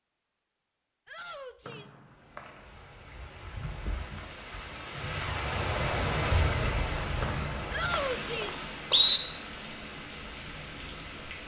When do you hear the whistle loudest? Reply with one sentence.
The loudest moment of the whistle is at 9 seconds.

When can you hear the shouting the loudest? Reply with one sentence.
The volume of the shouting peaks at 8 seconds.